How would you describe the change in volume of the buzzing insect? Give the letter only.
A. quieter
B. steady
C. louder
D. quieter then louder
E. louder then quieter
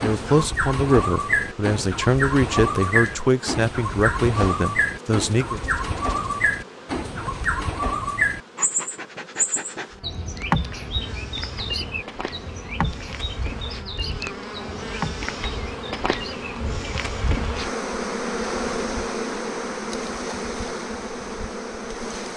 C.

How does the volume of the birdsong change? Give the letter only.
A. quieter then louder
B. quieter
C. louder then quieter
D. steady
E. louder
B.